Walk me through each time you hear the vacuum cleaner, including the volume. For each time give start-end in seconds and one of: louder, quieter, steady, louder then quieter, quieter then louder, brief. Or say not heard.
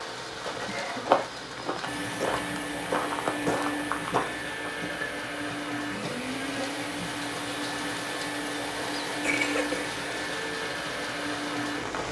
1.9-12.0 steady.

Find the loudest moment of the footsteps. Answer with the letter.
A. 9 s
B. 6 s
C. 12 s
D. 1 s
D.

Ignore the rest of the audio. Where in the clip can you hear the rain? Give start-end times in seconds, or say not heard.
0.0-12.0.